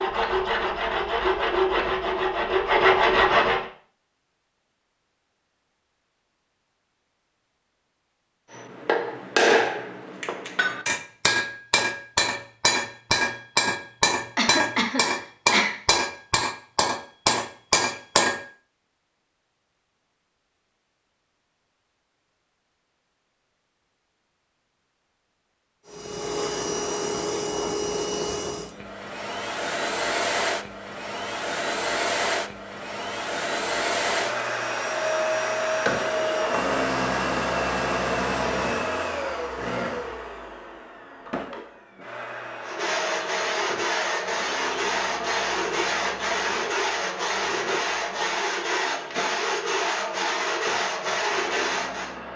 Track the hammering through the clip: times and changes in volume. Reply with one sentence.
You can hear the hammering from 8.5 to 18.4 s, at a steady volume.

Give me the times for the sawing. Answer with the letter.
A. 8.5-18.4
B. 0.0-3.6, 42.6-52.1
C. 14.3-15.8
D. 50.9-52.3
B.